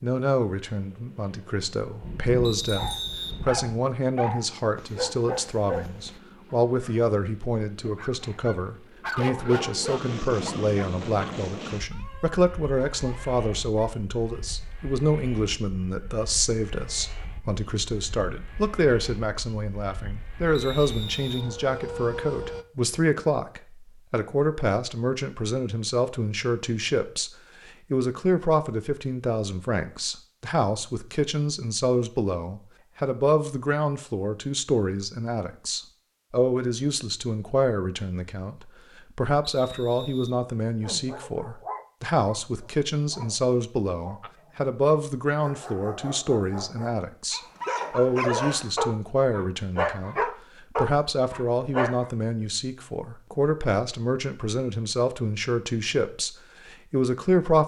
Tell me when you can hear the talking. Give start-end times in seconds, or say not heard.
0.0-57.6.